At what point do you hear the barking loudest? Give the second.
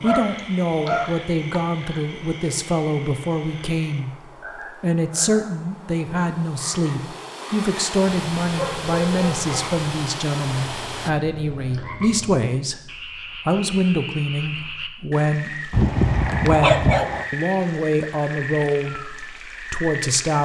17 s.